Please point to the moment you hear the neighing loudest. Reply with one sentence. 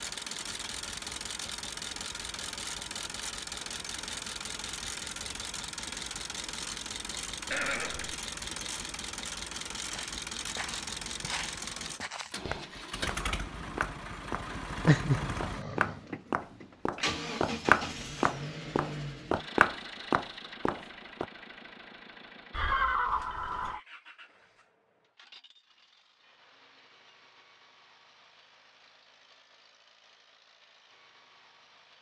The loudest moment of the neighing is at 23 seconds.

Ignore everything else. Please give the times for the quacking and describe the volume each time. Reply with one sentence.
You can't hear the quacking here.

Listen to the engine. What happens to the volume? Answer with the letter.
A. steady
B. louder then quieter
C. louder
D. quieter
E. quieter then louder
D.